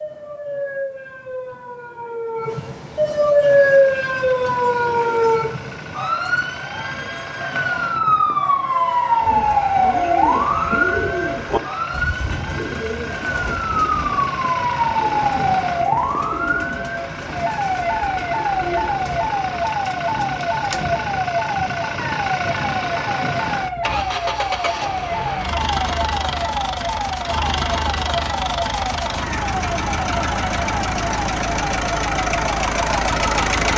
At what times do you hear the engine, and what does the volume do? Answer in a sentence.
The engine can be heard from 3.2 to 33.7 s, getting louder.